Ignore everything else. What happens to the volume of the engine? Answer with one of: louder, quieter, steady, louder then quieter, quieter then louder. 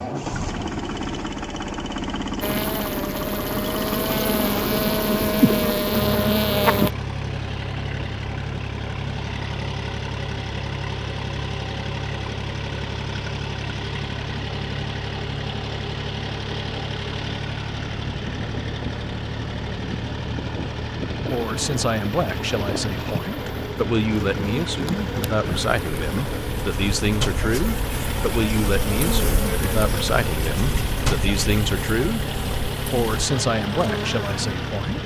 steady.